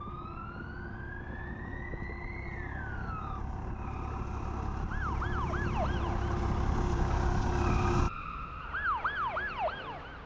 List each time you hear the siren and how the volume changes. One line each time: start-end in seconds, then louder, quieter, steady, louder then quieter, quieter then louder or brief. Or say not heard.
0.0-10.2 louder.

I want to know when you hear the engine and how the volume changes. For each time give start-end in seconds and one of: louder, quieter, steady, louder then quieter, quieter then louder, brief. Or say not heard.
0.0-8.1 louder.